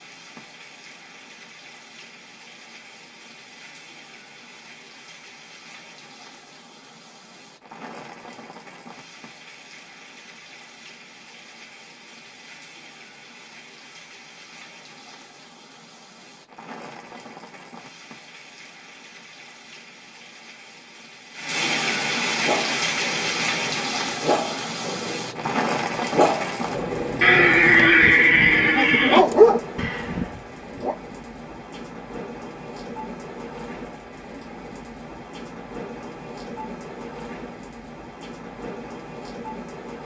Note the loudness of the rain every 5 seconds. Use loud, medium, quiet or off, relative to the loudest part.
quiet, quiet, quiet, quiet, loud, loud, medium, medium.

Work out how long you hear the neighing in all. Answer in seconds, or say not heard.
2 s.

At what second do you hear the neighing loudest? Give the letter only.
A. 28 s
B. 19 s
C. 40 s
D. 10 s
A.